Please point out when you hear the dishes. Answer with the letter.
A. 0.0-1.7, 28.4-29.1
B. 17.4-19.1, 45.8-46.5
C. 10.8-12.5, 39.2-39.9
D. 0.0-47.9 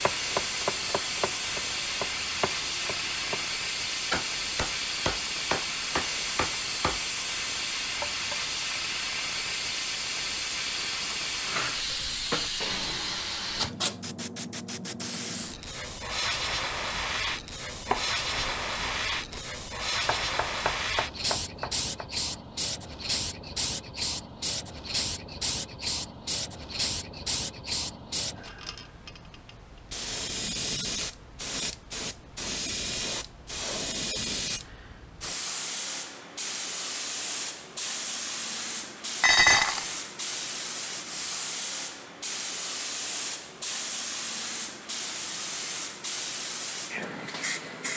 C.